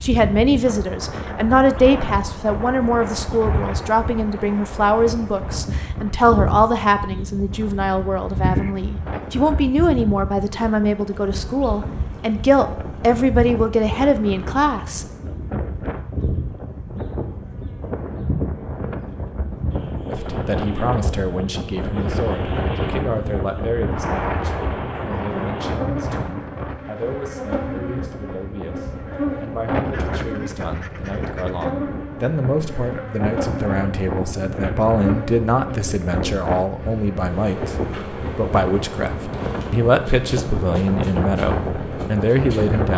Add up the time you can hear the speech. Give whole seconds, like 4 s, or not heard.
38 s.